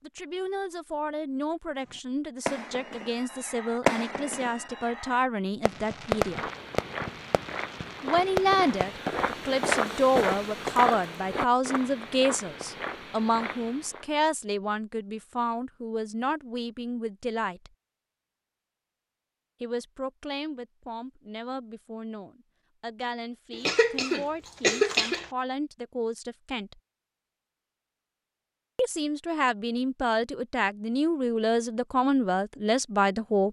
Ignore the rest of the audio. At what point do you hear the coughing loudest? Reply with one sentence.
The loudest moment of the coughing is at 25 seconds.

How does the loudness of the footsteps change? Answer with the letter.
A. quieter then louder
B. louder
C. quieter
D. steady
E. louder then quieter
E.